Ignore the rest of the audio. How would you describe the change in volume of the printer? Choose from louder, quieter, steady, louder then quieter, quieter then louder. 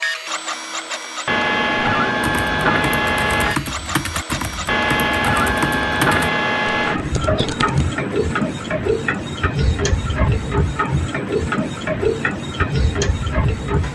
steady.